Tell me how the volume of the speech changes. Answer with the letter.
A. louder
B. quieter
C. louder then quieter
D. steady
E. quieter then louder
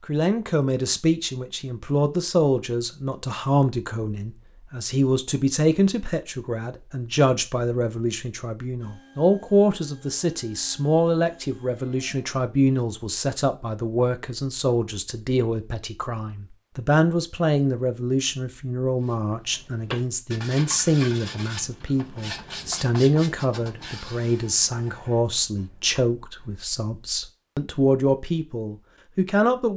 D.